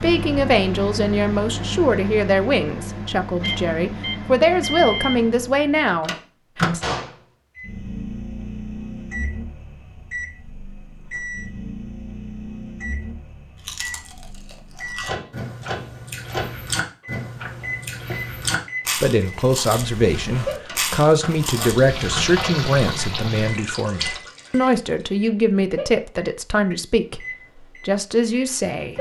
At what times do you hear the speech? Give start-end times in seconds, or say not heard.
0.0-6.8, 19.0-27.2, 27.9-28.9.